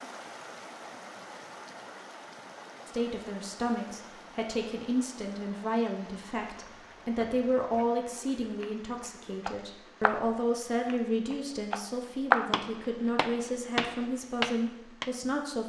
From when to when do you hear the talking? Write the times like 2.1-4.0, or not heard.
2.9-15.6.